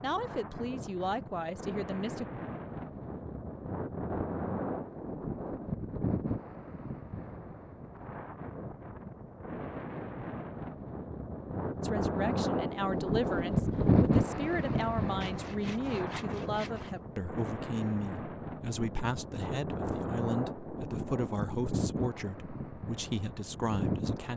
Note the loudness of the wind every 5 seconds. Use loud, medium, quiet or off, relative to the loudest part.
medium, medium, loud, medium, medium.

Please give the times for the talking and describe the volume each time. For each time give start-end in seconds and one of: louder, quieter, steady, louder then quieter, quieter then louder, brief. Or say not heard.
0.0-2.3 brief
11.8-24.3 steady.